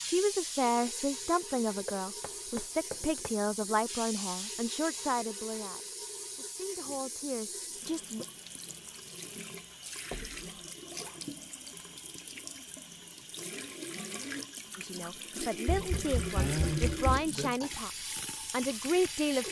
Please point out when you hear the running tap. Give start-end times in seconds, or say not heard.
0.0-19.4.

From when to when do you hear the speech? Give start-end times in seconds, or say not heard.
0.0-8.2, 14.8-19.4.